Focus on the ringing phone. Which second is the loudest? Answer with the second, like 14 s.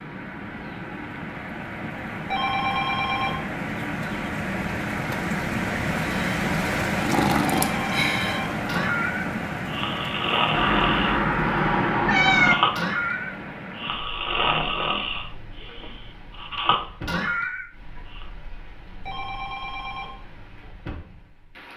3 s.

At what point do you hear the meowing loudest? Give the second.
12 s.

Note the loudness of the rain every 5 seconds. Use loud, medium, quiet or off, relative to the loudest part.
medium, loud, medium, quiet, quiet.